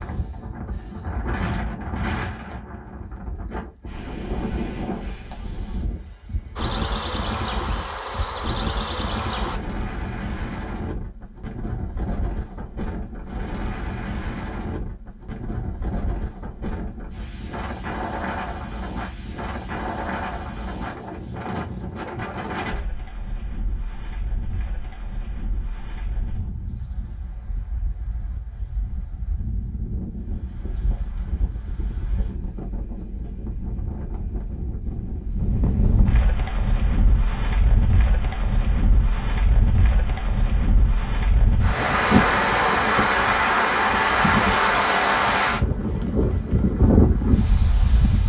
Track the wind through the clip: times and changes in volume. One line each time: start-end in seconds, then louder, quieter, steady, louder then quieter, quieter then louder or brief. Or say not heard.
0.0-48.2 louder.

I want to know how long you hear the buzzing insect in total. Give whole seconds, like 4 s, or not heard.
3 s.